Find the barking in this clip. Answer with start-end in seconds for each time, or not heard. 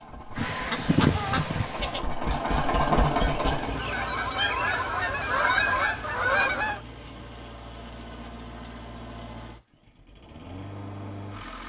not heard.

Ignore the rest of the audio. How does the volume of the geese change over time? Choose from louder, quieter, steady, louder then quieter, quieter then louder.
quieter then louder.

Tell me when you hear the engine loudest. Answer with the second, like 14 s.
3 s.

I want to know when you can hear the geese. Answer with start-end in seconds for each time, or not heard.
0.3-6.8.